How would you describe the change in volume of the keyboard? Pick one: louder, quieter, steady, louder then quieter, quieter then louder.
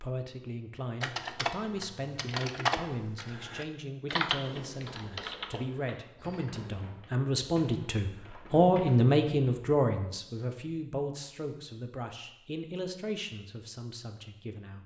quieter.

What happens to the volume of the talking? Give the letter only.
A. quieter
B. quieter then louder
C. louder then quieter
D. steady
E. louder
C.